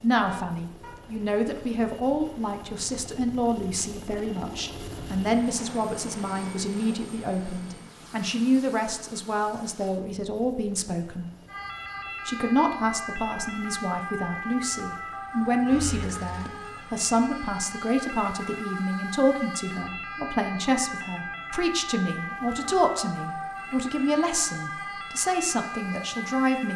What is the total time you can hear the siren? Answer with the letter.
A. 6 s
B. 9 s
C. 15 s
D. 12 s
C.